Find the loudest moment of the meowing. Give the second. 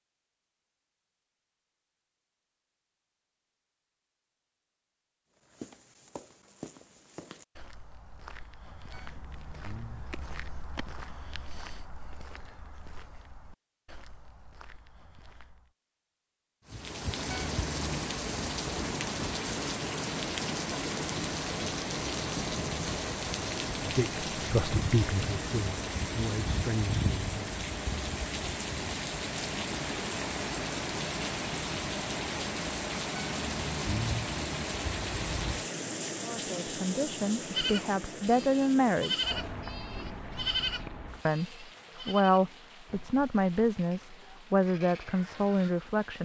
34 s.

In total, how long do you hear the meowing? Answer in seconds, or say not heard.
4 s.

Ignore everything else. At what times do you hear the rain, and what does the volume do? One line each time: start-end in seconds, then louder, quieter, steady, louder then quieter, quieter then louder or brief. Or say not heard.
16.6-46.2 quieter.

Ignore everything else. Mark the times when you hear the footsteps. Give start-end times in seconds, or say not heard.
5.3-15.7.